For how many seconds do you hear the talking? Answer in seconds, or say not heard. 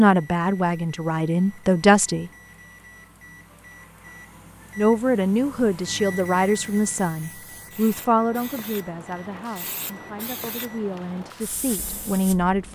10 s.